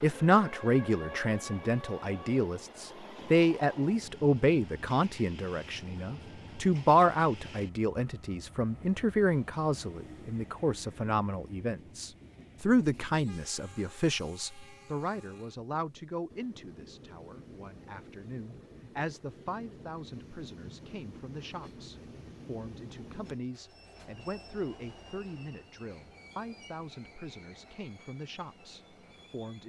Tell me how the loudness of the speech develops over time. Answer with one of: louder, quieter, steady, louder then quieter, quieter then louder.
quieter.